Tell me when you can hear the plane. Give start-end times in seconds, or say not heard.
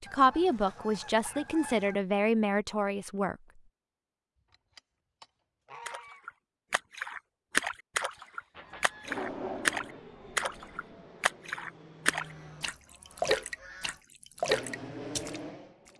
9.0-12.8, 14.4-15.9.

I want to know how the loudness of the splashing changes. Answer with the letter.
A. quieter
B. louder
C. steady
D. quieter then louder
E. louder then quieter
C.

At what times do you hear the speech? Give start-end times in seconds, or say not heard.
0.0-3.4.